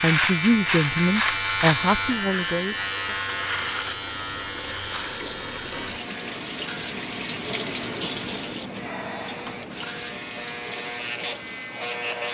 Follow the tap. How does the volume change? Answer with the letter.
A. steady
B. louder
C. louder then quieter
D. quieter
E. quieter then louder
C.